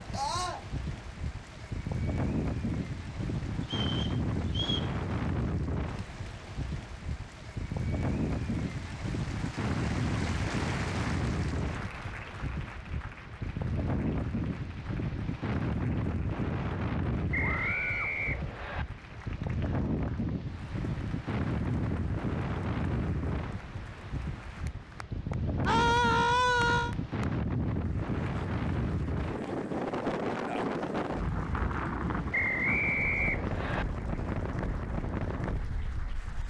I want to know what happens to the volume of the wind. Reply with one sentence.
The volume of the wind stays about the same.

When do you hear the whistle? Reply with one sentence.
The whistle can be heard from 3.6 to 4.9 s, from 17.3 to 18.9 s and from 32.3 to 33.9 s.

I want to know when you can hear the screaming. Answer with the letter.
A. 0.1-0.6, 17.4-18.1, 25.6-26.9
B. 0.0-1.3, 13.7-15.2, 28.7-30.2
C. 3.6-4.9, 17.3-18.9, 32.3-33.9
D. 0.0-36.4
A.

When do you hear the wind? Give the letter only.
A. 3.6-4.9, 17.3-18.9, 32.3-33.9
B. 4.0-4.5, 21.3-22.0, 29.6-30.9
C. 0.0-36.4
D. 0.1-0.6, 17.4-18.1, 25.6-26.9
C.